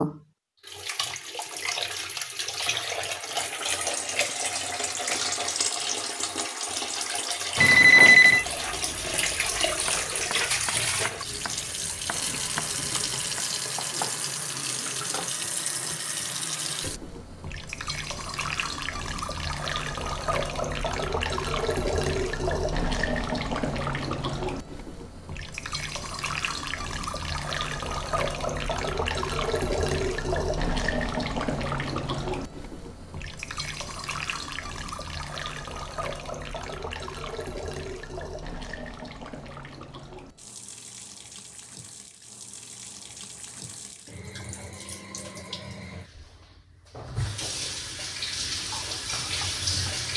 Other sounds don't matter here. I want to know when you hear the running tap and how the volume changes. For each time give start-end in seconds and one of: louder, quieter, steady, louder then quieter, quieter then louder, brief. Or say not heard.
0.0-50.1 quieter.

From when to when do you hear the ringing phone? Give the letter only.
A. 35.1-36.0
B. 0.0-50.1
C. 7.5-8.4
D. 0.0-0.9
C.